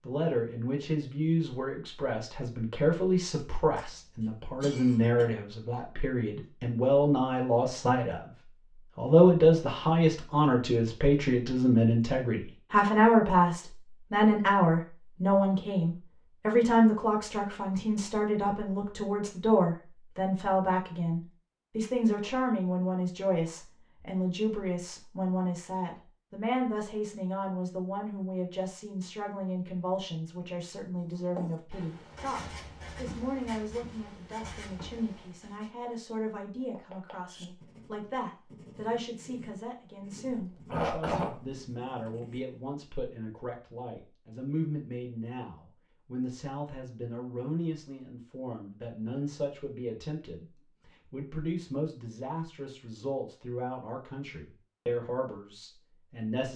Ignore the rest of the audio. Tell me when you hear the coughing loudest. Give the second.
41 s.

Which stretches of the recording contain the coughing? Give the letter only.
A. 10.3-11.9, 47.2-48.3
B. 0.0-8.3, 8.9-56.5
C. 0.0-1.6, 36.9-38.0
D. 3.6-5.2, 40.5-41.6
D.